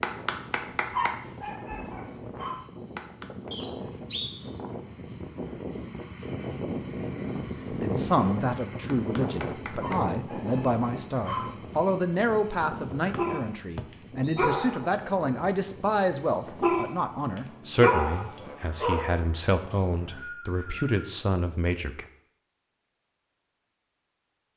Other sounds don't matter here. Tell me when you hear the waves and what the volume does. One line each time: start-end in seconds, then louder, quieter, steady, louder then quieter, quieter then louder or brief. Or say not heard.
not heard.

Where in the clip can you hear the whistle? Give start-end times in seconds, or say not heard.
3.5-4.4, 13.1-14.5, 19.7-21.1.